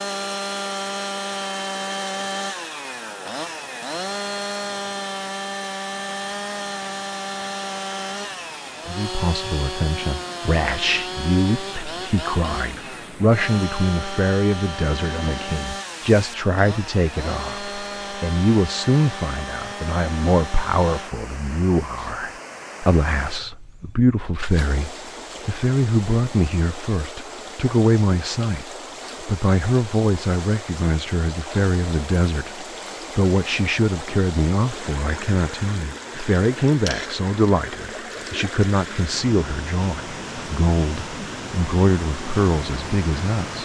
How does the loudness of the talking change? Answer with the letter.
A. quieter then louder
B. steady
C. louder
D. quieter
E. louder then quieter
B.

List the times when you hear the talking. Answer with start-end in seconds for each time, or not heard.
8.8-43.6.